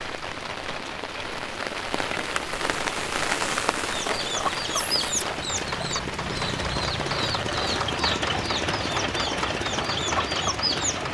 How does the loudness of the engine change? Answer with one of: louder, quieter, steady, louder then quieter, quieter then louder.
louder.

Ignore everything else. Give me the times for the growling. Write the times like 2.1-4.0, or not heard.
not heard.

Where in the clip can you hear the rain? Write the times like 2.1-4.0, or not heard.
0.0-11.0.